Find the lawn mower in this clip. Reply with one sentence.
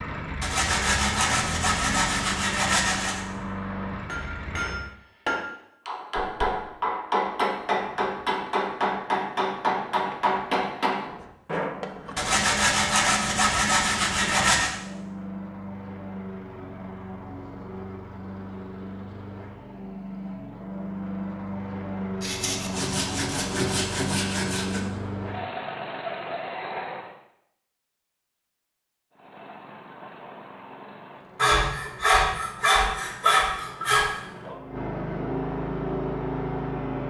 You can hear the lawn mower from 0.0 to 4.9 s, from 11.9 to 27.1 s and from 29.1 to 37.0 s.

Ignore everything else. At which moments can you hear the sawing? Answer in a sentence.
The sawing can be heard from 0.4 to 3.2 s, from 12.2 to 14.8 s, from 22.2 to 24.8 s and from 31.4 to 34.1 s.